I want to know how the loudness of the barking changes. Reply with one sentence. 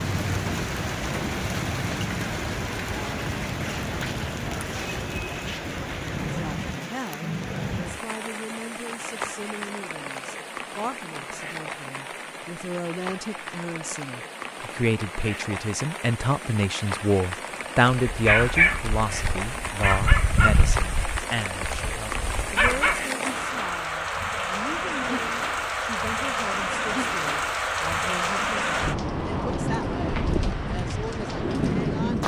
The volume of the barking goes down, then up.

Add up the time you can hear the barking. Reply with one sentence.
You can hear the barking for 5 seconds altogether.